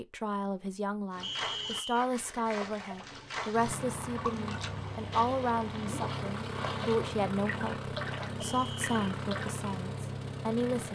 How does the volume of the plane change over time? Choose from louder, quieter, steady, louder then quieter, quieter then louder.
steady.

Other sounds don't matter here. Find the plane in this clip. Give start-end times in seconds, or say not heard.
3.5-10.9.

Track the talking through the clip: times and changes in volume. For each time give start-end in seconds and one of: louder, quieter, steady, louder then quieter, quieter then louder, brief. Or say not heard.
0.0-10.9 steady.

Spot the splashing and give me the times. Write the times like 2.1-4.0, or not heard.
1.1-9.6.